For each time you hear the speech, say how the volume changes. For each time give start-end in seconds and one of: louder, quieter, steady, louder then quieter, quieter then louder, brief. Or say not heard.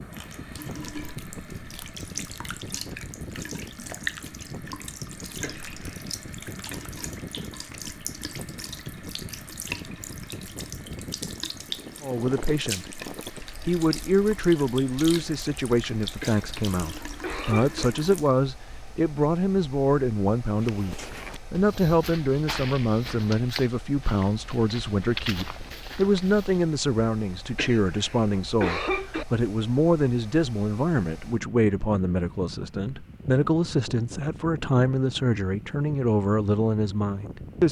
12.0-12.9 brief
13.7-37.6 steady.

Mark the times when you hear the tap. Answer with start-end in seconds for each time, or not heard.
0.0-18.4.